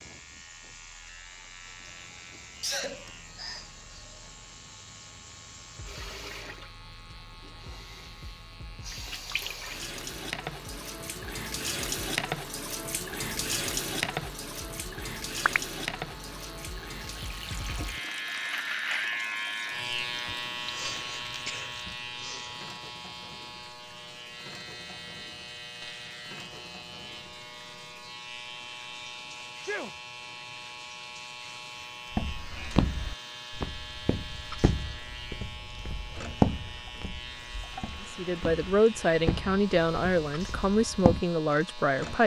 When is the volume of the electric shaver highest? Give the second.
19 s.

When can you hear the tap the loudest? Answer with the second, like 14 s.
14 s.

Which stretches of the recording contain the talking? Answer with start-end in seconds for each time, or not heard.
38.1-42.2.